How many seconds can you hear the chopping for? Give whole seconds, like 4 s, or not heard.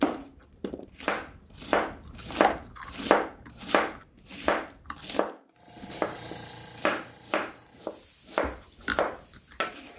10 s.